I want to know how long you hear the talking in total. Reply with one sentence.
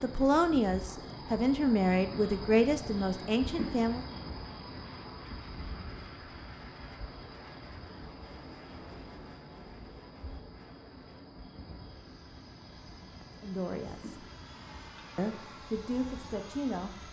The talking can be heard for 7 seconds in total.